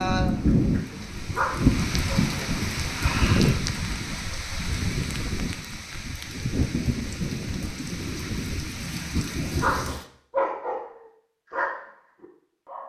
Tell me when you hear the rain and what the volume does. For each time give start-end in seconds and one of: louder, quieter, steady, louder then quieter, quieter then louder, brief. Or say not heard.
0.0-10.1 quieter.